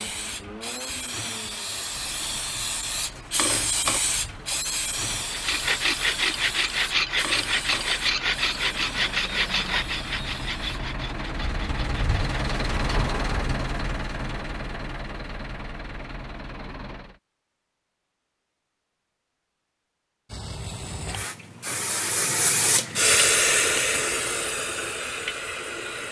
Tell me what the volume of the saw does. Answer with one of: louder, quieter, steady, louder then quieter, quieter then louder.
quieter.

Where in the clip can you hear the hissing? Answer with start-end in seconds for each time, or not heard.
0.0-10.8, 20.2-26.0.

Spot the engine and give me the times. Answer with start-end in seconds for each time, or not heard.
0.0-17.2.